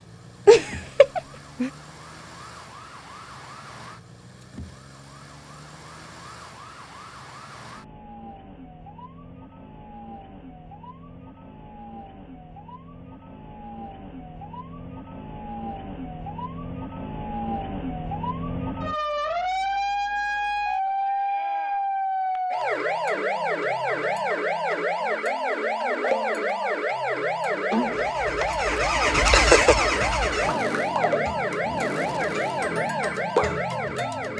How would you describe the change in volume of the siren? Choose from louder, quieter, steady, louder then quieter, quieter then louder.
louder.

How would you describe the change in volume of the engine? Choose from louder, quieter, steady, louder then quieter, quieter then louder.
quieter.